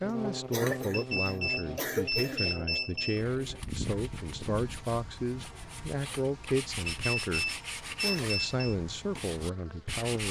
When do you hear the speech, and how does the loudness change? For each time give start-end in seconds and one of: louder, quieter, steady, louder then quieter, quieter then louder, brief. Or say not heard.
0.0-10.2 steady.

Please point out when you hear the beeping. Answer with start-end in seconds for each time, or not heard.
0.9-3.2, 6.8-8.8.